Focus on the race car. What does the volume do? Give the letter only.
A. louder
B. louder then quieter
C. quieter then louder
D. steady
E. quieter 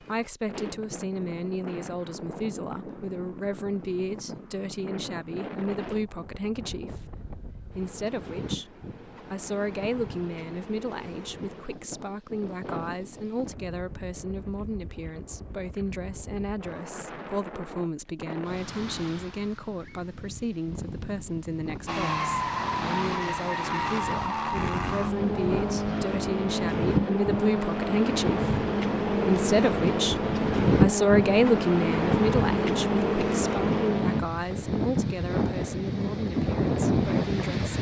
D.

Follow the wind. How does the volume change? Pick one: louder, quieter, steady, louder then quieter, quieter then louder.
louder.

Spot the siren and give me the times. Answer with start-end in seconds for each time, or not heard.
not heard.